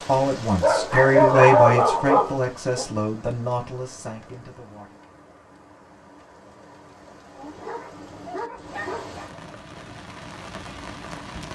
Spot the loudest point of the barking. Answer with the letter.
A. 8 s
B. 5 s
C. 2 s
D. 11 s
C.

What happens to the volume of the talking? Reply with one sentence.
The loudness of the talking goes down.